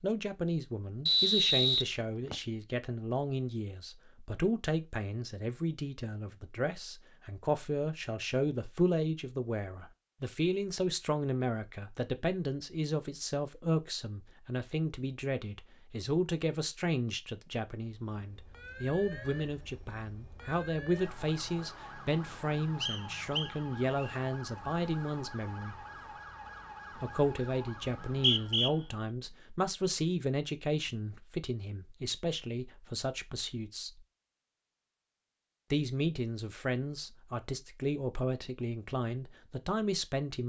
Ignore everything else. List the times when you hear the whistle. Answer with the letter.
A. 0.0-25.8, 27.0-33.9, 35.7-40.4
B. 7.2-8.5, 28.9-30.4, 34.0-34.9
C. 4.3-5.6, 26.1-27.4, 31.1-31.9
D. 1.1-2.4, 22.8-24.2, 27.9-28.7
D.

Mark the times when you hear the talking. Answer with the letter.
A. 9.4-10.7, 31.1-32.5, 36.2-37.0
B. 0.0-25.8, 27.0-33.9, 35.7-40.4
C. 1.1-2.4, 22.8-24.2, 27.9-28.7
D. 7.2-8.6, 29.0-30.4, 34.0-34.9
B.